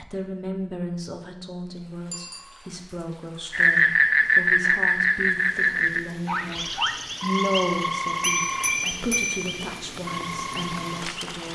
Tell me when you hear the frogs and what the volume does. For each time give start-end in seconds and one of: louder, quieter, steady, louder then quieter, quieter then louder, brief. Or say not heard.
3.5-11.2 quieter.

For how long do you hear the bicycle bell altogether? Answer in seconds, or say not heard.
2 s.